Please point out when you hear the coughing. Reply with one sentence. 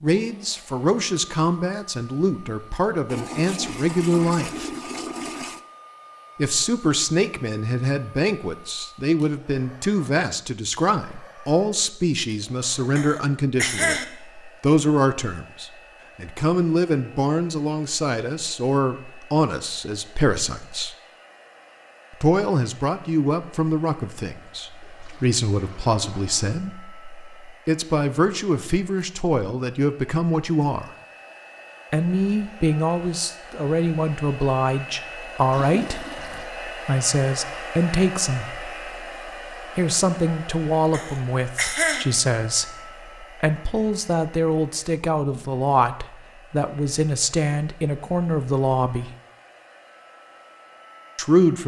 The coughing can be heard from 12.9 to 14.1 s and from 40.9 to 42.0 s.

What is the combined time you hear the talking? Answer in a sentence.
You can hear the talking for 45 seconds altogether.